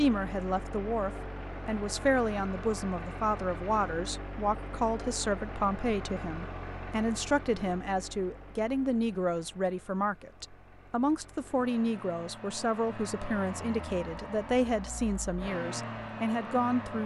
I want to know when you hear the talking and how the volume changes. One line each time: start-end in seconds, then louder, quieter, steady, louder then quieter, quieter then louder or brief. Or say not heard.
0.0-17.0 steady.